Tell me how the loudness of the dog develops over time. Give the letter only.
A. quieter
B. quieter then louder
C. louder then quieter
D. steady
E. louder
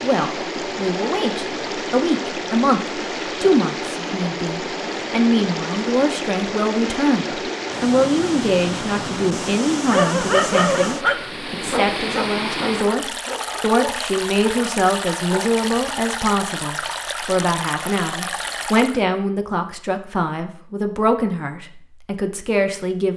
A.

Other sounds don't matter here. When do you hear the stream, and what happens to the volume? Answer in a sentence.
The stream can be heard from 0.0 to 19.1 s, at a steady volume.